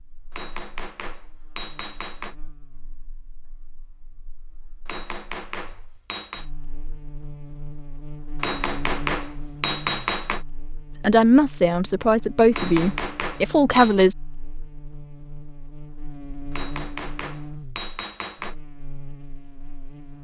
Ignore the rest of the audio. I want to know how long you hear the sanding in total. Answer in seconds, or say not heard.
not heard.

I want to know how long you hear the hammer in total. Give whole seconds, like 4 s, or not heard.
9 s.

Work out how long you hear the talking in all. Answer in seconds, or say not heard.
3 s.